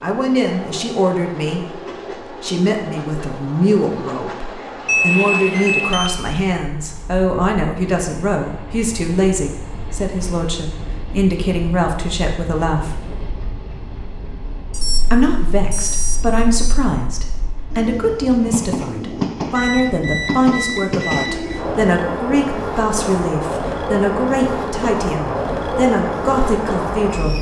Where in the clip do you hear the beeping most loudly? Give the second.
5 s.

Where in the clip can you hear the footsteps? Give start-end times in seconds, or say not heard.
not heard.